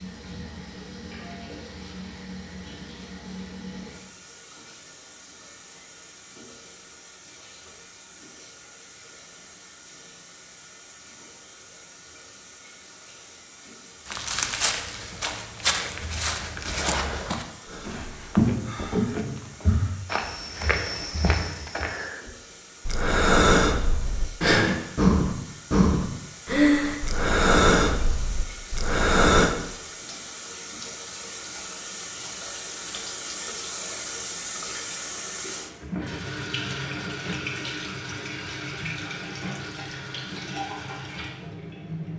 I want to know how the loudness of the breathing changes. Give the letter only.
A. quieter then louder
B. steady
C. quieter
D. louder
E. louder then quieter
D.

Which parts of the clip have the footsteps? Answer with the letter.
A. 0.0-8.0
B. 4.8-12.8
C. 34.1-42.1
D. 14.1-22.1
D.